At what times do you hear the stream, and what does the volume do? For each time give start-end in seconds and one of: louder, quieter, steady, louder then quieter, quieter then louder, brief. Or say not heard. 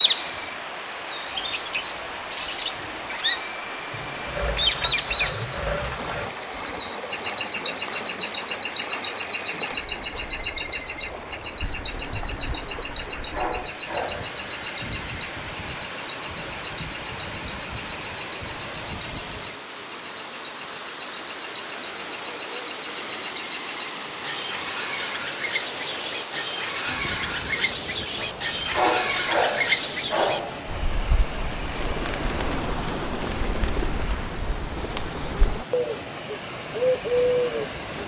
0.0-38.0 steady.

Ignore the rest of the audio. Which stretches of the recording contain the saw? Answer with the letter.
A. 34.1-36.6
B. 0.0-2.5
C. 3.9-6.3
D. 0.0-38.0
C.